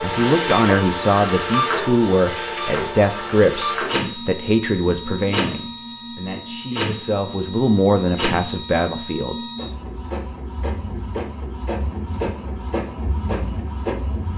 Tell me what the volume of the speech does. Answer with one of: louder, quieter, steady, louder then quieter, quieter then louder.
quieter then louder.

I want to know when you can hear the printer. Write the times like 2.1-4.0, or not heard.
0.0-14.3.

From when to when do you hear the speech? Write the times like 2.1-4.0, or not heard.
0.0-9.3.